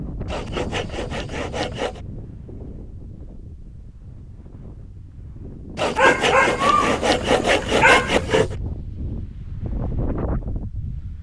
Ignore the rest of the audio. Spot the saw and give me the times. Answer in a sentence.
You can hear the saw from 0.2 to 2.0 s and from 5.8 to 8.6 s.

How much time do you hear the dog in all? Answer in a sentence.
You can hear the dog for 2 seconds altogether.